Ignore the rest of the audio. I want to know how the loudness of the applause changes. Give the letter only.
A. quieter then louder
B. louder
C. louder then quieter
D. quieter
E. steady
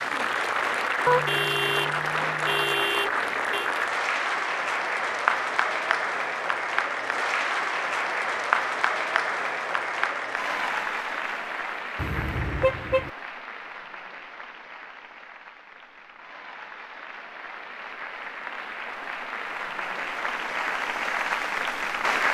A.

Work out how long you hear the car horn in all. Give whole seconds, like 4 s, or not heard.
4 s.